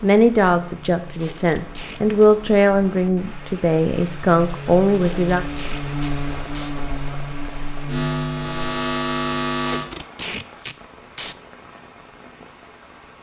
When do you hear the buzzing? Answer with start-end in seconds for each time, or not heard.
0.0-9.8.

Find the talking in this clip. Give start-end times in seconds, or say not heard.
0.0-5.5.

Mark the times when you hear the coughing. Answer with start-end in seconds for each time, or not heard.
not heard.